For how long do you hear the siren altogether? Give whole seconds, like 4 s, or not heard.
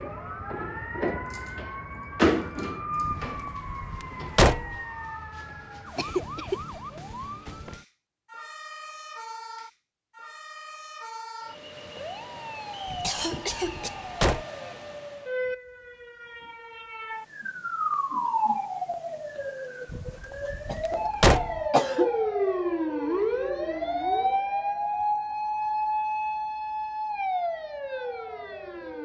29 s.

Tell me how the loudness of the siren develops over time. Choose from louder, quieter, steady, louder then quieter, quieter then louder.
quieter then louder.